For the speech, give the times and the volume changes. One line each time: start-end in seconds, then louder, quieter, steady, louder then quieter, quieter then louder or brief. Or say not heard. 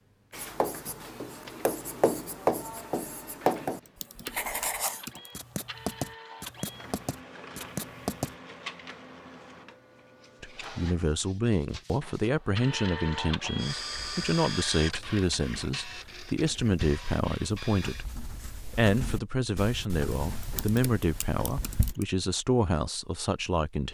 10.4-23.8 steady.